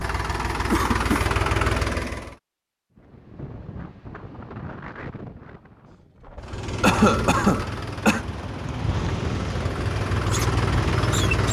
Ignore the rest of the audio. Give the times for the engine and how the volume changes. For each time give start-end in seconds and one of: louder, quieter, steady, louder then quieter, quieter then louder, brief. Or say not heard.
0.0-2.4 brief
6.4-11.4 quieter then louder.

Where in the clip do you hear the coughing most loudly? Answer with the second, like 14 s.
7 s.